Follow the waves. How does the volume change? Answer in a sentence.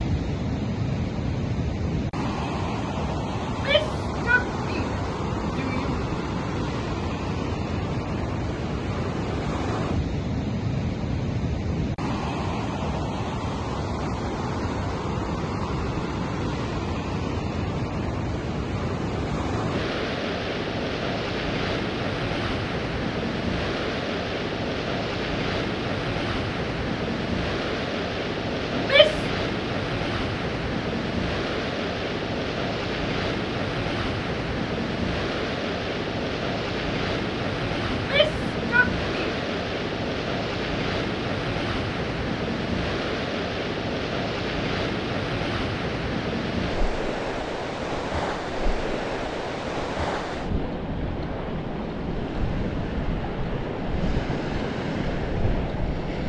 The volume of the waves stays about the same.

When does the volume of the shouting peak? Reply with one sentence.
The volume of the shouting peaks at 29 seconds.